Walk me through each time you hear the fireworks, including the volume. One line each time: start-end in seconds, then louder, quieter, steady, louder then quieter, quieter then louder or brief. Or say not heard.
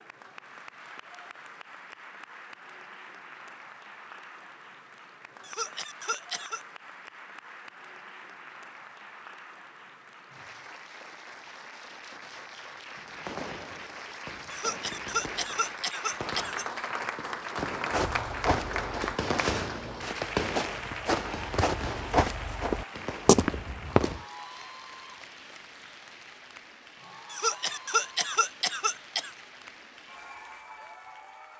12.9-24.3 louder then quieter.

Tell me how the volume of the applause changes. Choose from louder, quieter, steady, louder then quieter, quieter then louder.
louder then quieter.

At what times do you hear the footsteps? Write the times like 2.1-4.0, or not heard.
17.9-24.2.